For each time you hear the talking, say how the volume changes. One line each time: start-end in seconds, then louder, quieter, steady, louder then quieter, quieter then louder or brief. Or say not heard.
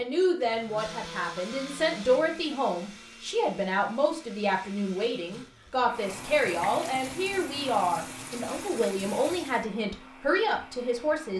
0.0-11.3 steady.